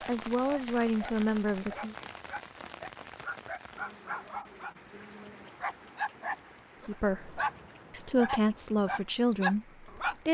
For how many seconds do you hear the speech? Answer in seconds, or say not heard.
5 s.